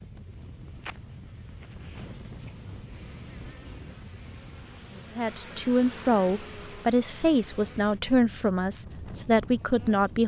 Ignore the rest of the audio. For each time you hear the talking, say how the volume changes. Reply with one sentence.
You can hear the talking from 5.0 to 10.2 s, at a steady volume.